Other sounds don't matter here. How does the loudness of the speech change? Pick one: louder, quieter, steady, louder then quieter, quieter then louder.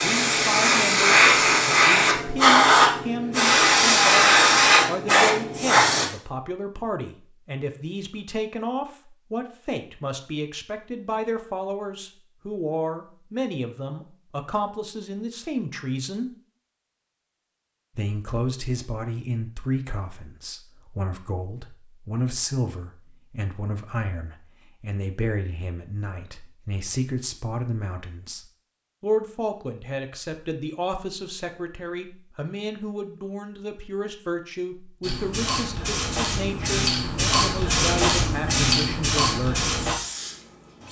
steady.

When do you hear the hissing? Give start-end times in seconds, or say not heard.
0.0-6.1, 35.0-40.8.